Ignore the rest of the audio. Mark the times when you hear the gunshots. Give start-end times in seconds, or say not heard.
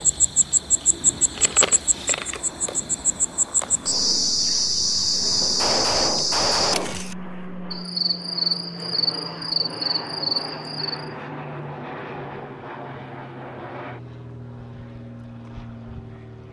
5.4-7.0.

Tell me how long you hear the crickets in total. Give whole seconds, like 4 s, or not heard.
11 s.